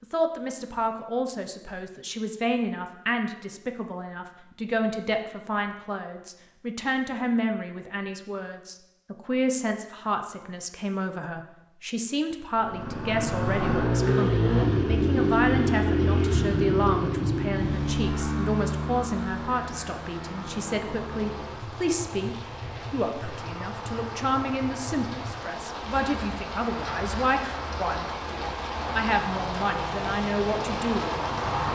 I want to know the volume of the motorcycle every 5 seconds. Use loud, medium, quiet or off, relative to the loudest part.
off, off, loud, loud, quiet, quiet, quiet.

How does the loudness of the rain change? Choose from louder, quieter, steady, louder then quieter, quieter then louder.
louder.